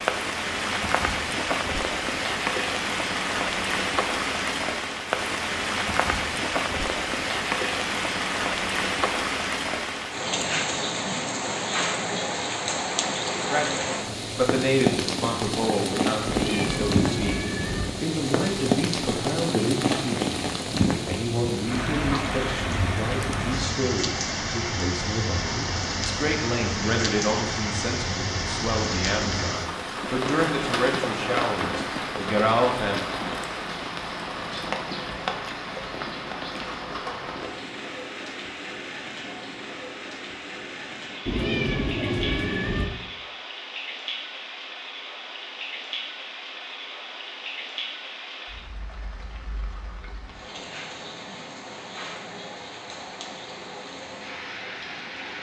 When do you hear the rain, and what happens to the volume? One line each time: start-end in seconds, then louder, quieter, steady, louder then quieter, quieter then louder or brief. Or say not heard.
0.0-55.3 quieter.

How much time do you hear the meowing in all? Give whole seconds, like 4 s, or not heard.
3 s.